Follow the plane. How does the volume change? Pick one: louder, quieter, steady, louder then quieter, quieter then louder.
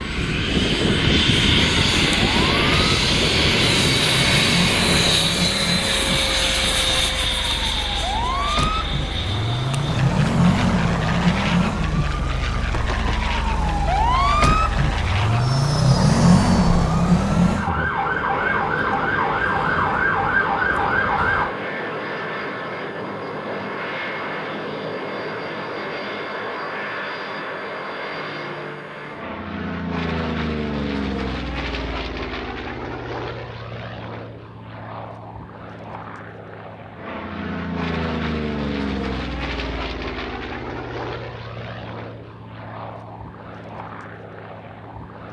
quieter.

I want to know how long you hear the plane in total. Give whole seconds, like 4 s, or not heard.
45 s.